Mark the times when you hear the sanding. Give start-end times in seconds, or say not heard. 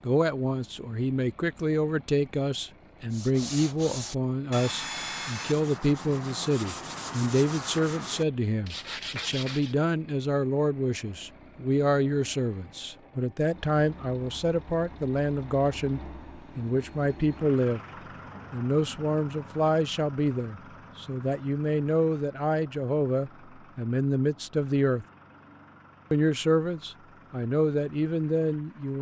3.1-9.8.